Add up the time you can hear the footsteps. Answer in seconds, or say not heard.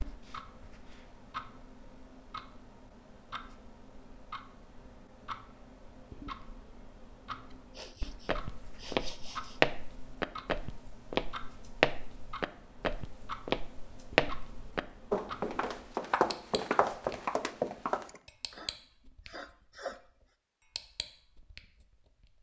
10 s.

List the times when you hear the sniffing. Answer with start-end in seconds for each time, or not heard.
0.2-1.1, 7.5-9.6, 18.1-20.0.